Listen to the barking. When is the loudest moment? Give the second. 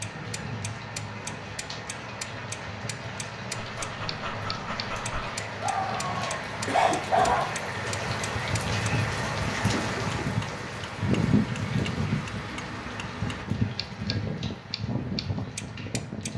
7 s.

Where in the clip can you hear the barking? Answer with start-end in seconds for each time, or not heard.
3.5-7.5.